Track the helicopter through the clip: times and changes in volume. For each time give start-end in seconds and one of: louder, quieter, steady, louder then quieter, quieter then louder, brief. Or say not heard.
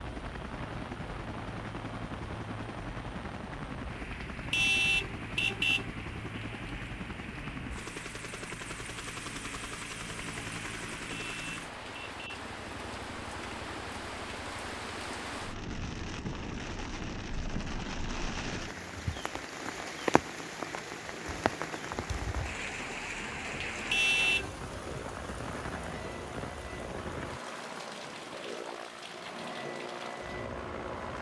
0.0-31.1 quieter then louder.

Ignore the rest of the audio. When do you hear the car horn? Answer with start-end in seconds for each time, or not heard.
4.5-5.9, 11.1-12.5, 23.9-24.5.